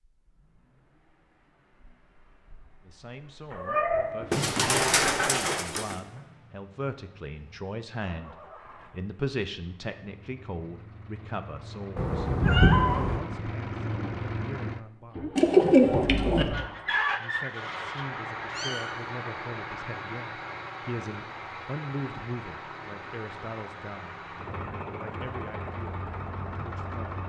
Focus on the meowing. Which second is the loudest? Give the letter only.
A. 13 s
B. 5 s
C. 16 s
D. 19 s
A.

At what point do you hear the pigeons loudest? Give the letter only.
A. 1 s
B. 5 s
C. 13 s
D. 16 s
D.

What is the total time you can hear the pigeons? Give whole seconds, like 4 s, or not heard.
3 s.